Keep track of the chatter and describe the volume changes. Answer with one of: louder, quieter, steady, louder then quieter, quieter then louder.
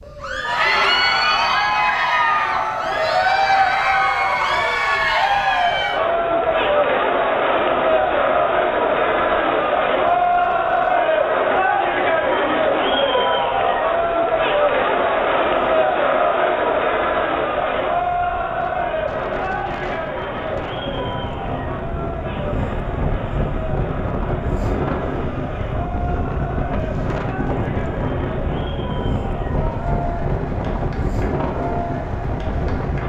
quieter.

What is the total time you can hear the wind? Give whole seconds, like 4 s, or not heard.
33 s.